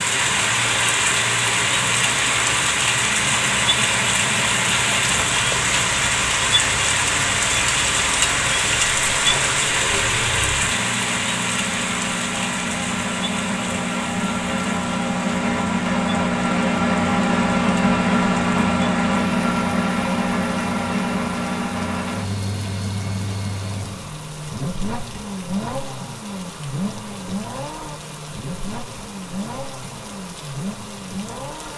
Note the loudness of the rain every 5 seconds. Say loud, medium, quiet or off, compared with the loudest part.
loud, loud, medium, quiet, quiet, quiet, quiet.